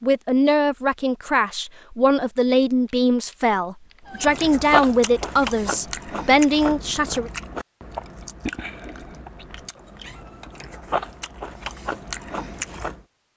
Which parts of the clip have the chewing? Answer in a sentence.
The chewing can be heard from 4.2 to 13.0 s.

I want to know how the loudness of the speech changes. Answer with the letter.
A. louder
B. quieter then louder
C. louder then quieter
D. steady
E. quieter
D.